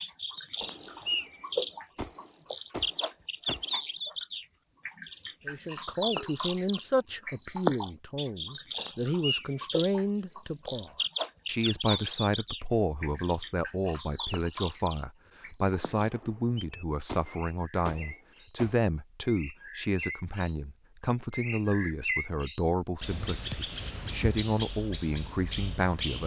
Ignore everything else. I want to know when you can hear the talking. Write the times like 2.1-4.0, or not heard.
5.5-26.2.